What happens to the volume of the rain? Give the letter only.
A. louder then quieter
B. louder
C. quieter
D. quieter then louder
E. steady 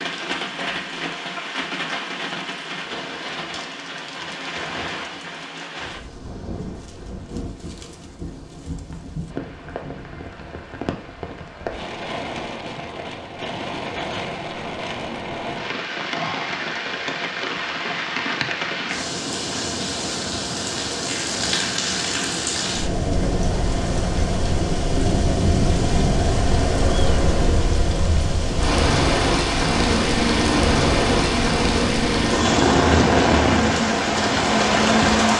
B.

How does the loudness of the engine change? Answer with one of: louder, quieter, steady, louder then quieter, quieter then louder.
steady.